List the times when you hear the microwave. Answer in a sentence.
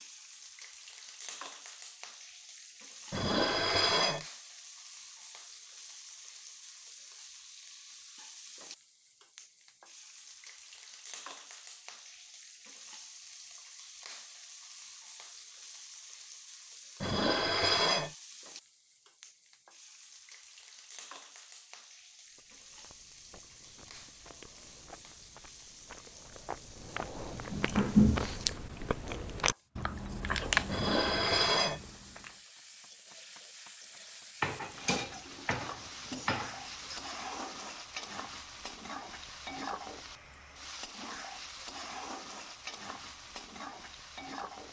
The microwave can't be heard in this clip.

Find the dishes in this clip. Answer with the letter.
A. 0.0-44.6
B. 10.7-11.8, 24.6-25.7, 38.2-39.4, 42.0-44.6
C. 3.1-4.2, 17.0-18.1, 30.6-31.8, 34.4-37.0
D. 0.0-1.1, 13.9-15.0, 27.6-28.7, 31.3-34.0
C.